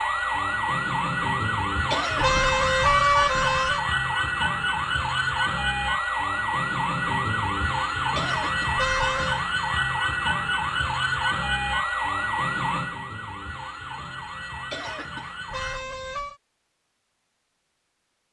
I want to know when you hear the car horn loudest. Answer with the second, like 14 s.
3 s.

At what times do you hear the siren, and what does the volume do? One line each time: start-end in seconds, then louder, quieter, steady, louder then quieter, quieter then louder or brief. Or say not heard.
0.0-15.8 quieter.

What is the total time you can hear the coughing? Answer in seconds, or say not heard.
2 s.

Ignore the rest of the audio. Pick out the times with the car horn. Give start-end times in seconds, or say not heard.
2.2-3.9, 8.8-9.4, 15.5-16.4.